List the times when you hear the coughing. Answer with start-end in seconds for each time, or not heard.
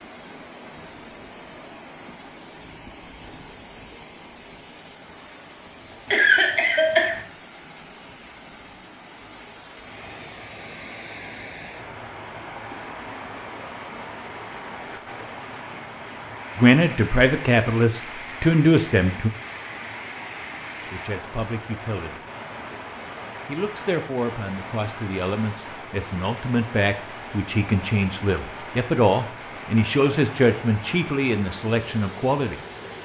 6.1-7.2.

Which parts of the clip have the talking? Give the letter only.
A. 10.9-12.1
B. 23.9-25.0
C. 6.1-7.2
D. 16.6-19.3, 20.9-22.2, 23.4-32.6
D.